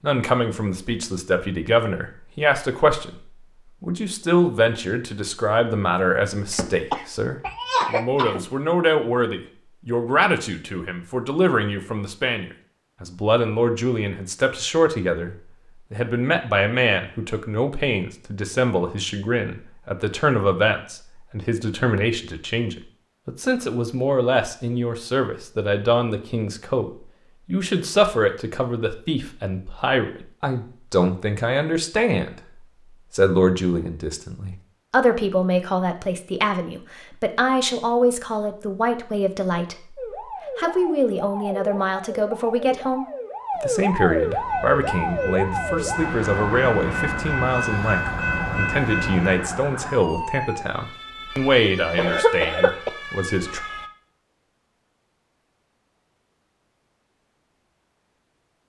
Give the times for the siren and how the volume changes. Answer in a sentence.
You can hear the siren from 40.0 to 53.9 s, getting louder then quieter.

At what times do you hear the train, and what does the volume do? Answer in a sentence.
You can hear the train from 44.1 to 49.6 s, getting louder.